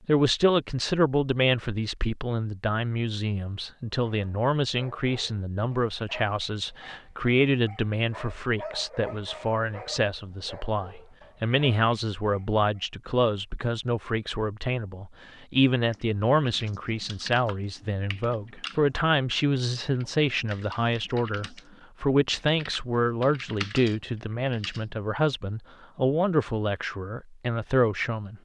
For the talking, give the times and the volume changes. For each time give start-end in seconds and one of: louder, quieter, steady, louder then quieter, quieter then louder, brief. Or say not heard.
0.1-28.4 steady.